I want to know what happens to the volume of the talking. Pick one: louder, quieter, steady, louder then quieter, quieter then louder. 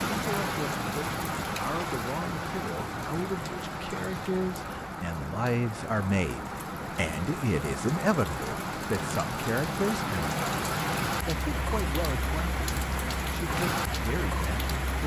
louder then quieter.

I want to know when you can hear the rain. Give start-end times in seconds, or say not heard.
0.0-15.0.